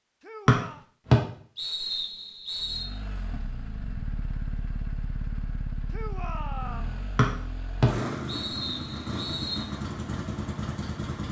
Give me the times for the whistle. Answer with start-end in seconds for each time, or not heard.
0.5-2.8, 7.2-9.7.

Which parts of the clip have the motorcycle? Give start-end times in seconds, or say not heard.
2.5-11.2.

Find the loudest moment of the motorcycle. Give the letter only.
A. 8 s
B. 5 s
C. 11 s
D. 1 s
A.